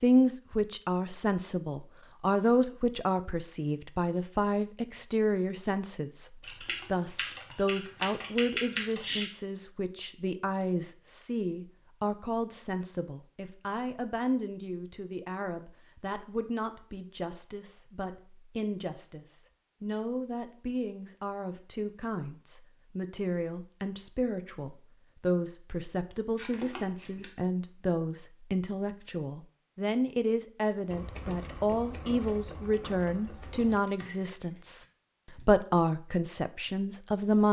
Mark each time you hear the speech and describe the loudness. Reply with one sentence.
You can hear the speech from 0.0 to 37.4 s, getting quieter then louder.